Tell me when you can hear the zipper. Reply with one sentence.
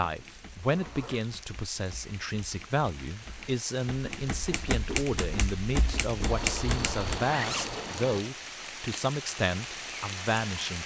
The zipper can be heard from 0.3 to 1.2 s and from 6.2 to 8.2 s.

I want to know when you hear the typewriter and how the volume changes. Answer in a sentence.
The typewriter can be heard from 0.0 to 7.2 s, getting louder.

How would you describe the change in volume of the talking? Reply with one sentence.
The volume of the talking stays about the same.